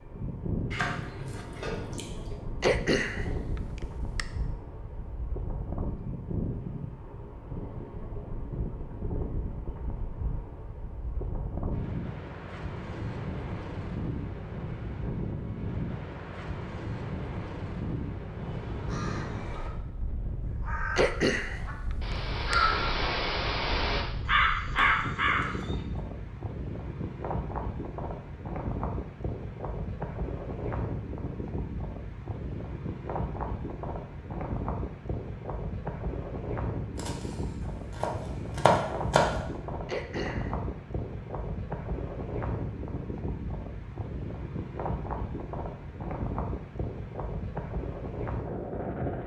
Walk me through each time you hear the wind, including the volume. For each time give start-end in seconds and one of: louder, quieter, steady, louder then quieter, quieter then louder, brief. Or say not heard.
0.0-49.2 steady.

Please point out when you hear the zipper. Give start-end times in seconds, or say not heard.
not heard.